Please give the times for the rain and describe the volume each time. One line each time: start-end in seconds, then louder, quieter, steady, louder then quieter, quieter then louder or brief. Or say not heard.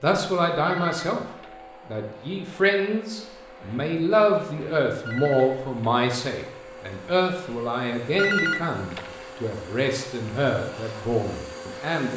not heard.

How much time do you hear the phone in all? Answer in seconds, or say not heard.
3 s.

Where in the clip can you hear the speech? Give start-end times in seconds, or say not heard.
0.0-1.2, 1.9-12.1.